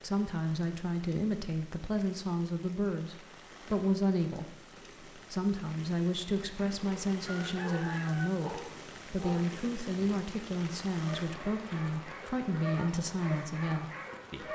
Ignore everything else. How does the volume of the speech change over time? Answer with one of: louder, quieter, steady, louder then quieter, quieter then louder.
steady.